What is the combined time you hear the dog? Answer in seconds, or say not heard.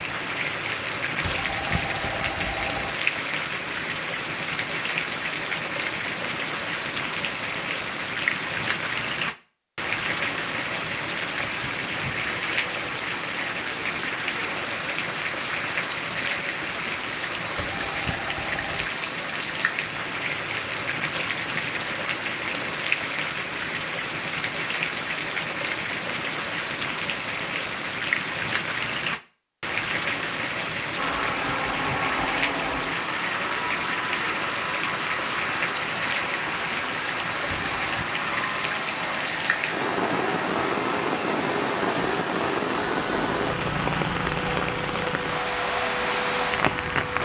not heard.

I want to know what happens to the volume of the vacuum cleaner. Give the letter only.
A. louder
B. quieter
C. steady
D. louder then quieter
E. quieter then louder
C.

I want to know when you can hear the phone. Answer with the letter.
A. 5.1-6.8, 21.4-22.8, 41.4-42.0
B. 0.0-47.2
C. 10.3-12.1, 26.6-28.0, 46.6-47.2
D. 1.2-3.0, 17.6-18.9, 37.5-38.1
D.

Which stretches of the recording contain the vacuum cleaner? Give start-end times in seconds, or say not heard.
30.9-47.2.